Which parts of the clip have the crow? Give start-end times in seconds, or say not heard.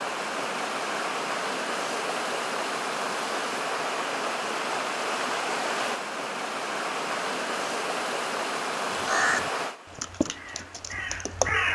8.8-11.7.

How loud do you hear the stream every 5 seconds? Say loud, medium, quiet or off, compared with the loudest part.
loud, loud, quiet.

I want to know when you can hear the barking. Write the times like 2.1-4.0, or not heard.
not heard.